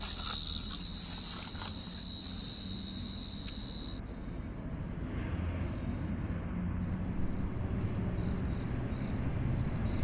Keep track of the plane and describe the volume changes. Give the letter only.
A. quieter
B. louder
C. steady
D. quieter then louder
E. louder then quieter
B.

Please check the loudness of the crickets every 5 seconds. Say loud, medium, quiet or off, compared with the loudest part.
loud, medium.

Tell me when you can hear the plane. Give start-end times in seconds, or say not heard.
0.0-9.9.